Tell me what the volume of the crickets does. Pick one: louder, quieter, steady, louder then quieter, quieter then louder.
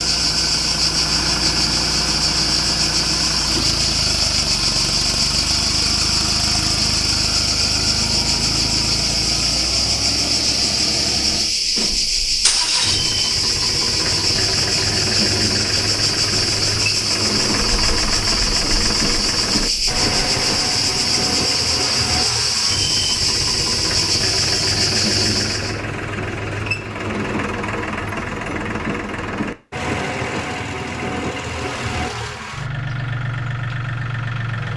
steady.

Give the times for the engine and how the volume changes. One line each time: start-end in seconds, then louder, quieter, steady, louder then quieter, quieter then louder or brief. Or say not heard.
0.0-34.7 steady.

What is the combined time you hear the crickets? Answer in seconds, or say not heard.
26 s.